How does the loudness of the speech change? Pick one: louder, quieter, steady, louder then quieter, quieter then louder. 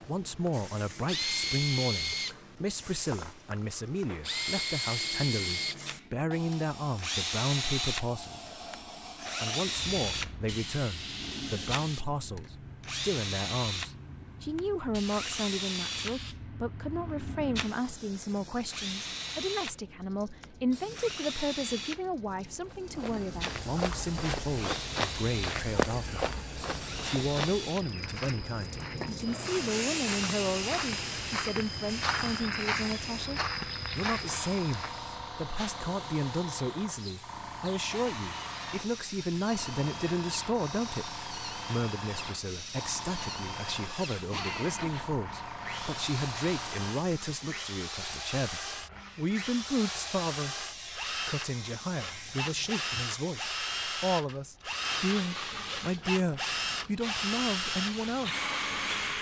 steady.